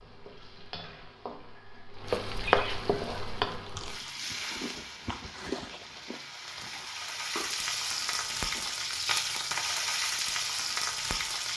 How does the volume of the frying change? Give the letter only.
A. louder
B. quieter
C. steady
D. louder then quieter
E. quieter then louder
E.